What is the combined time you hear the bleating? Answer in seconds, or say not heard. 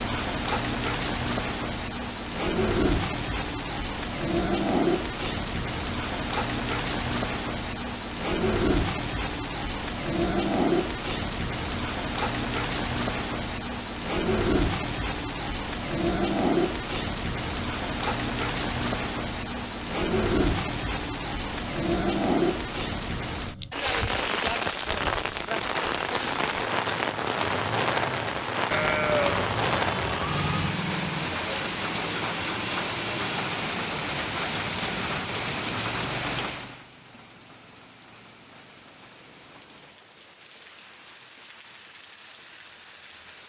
2 s.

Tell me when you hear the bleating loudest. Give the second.
29 s.